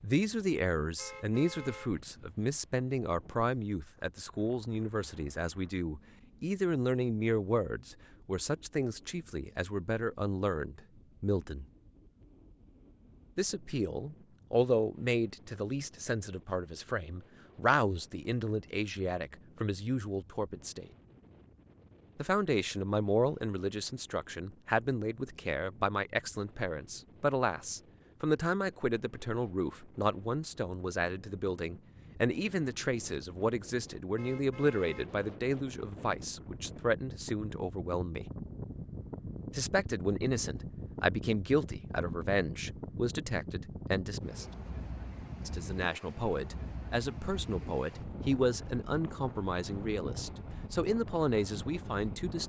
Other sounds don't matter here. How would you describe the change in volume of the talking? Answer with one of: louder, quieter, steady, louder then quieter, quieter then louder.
steady.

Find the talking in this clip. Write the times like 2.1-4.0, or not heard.
0.0-11.7, 13.3-20.9, 22.1-38.3, 39.5-44.5, 45.5-52.4.